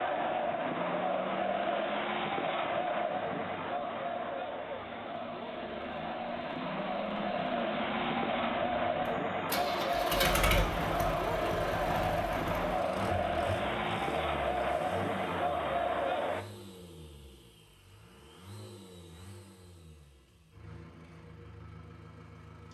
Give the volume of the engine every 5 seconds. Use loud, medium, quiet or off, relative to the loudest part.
quiet, loud, loud, quiet, quiet.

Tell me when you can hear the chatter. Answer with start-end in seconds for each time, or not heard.
0.0-16.4.